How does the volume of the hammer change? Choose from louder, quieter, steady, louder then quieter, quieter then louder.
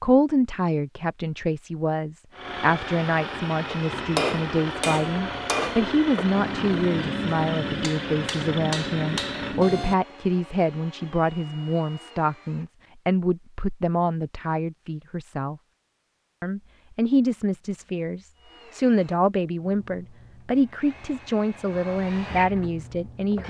steady.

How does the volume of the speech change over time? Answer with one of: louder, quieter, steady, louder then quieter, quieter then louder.
steady.